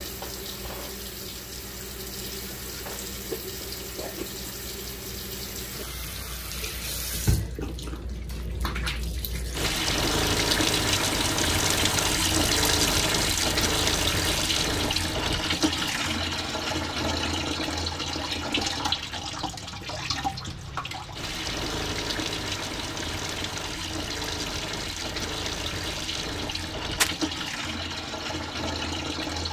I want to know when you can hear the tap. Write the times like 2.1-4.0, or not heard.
0.0-29.4.